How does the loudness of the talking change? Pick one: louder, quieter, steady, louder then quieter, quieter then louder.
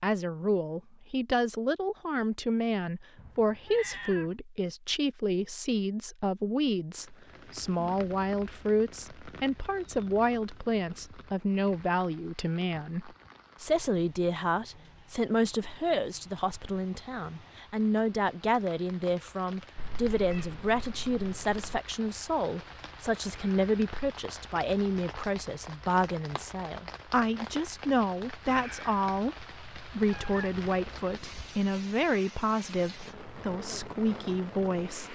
steady.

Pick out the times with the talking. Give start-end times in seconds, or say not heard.
0.0-35.1.